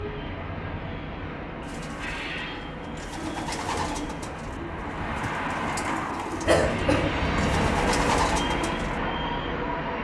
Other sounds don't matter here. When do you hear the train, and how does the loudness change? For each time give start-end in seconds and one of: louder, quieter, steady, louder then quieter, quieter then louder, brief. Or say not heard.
0.0-9.9 louder.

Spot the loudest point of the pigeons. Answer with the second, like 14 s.
8 s.